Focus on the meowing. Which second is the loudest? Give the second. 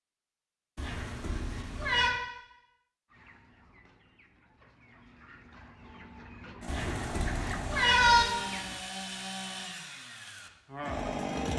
8 s.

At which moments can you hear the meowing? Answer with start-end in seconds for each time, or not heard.
0.8-2.1, 6.7-8.2.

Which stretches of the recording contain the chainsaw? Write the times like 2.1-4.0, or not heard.
6.6-11.5.